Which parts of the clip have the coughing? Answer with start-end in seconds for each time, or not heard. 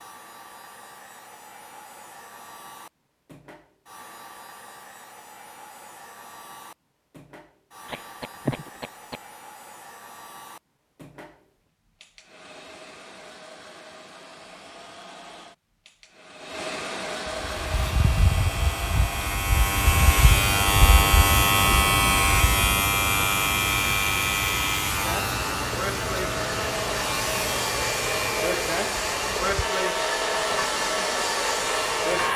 7.8-9.2.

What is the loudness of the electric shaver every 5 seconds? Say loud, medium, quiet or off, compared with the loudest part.
off, off, off, medium, loud, medium, medium.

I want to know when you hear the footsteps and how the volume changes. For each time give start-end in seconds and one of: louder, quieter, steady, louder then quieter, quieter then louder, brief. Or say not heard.
not heard.